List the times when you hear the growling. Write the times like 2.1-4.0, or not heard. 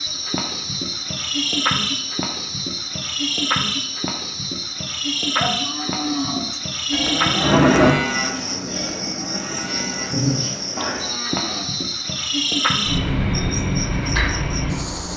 9.4-10.4.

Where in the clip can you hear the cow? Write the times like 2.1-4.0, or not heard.
5.2-11.8.